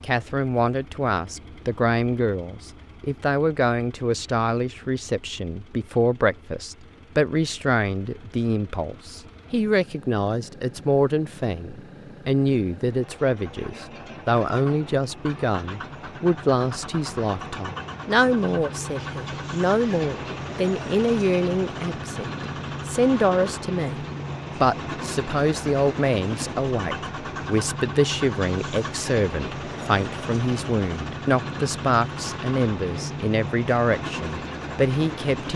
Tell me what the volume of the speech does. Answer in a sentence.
The loudness of the speech stays about the same.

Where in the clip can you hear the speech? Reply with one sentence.
The speech can be heard from 0.0 to 35.5 s.